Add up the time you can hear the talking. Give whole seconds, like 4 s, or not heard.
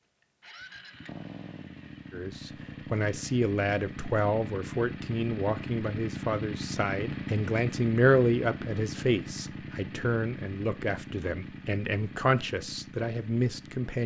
12 s.